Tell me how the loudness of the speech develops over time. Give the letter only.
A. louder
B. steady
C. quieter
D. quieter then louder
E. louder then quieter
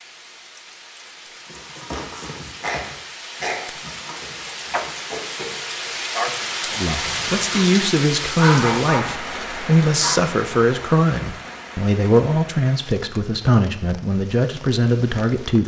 B.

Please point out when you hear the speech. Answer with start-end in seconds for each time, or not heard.
6.8-15.6.